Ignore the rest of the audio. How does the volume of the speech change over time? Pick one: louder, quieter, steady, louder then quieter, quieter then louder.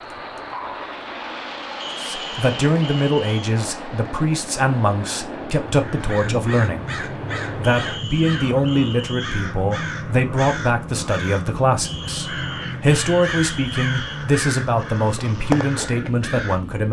steady.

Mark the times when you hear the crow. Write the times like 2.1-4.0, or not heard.
5.7-16.6.